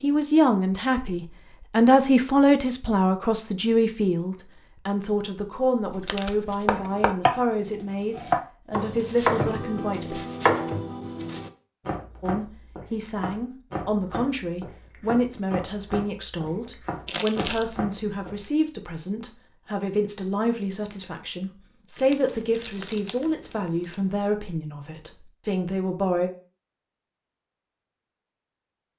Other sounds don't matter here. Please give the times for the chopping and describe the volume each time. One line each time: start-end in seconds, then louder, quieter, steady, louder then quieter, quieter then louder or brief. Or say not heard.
6.7-7.4 brief
8.2-18.5 quieter.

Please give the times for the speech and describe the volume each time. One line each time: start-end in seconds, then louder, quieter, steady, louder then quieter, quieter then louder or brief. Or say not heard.
0.0-10.2 quieter
12.2-26.3 steady.